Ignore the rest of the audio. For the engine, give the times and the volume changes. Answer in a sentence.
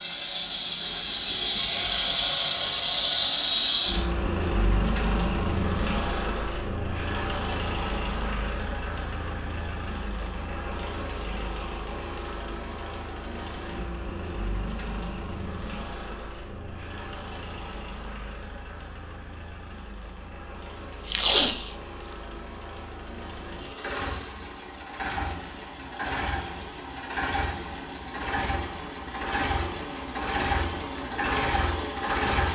You can hear the engine from 0.0 to 32.5 s, getting quieter then louder.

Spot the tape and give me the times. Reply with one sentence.
The tape can be heard from 21.1 to 21.8 s.